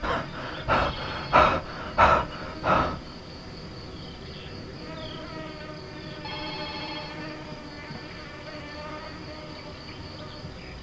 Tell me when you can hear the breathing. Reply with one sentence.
The breathing can be heard from 0.0 to 3.0 s.